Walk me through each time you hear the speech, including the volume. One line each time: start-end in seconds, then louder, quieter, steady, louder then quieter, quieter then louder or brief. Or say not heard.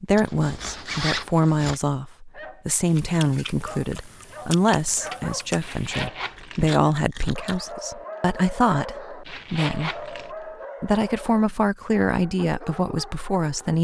0.0-10.1 steady
10.8-13.7 brief.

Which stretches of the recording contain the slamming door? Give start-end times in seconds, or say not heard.
not heard.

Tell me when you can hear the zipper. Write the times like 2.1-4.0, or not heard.
0.1-1.8, 5.6-6.7, 9.2-10.3.